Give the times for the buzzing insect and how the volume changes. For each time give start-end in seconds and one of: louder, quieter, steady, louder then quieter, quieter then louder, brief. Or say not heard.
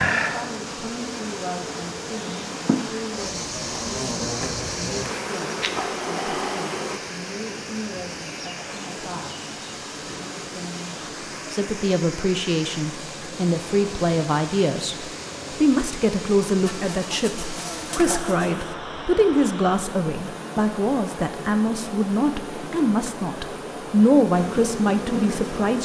0.0-7.0 louder
16.6-18.8 brief
24.4-25.8 brief.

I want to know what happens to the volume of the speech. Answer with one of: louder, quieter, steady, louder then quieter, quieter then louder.
louder.